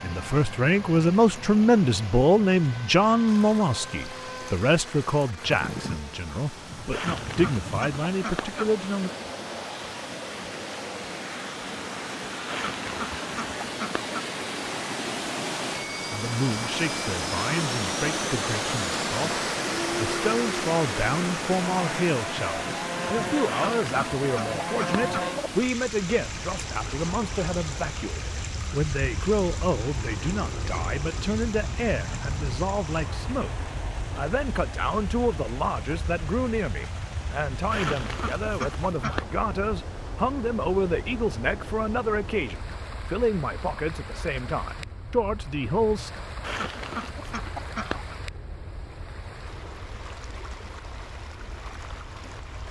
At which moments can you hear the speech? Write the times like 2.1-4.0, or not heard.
0.0-9.1, 16.1-46.1.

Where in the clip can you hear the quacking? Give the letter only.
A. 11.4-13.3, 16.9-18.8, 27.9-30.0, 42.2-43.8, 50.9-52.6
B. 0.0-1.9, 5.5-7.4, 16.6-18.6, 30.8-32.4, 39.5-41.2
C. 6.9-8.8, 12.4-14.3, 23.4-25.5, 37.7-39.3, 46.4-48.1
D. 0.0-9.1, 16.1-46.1
C.